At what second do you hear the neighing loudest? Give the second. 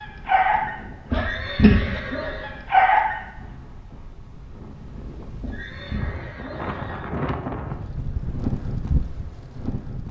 2 s.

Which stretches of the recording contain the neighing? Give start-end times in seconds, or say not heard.
1.1-2.5, 5.4-7.0.